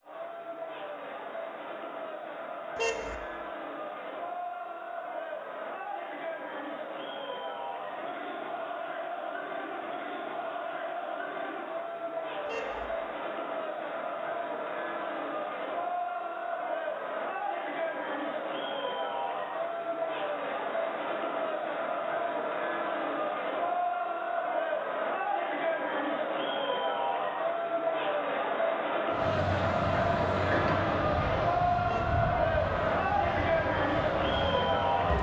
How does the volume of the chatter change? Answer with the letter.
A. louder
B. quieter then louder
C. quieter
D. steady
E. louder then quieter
A.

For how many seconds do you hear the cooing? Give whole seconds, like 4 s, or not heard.
not heard.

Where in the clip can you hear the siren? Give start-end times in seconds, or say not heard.
not heard.